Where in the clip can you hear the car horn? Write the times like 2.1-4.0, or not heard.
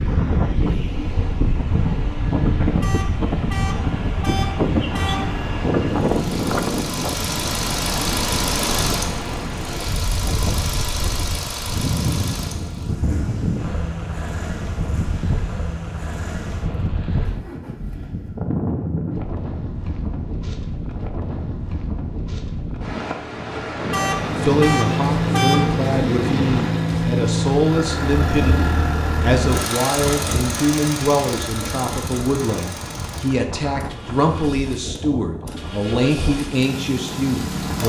2.8-5.4, 23.9-25.8.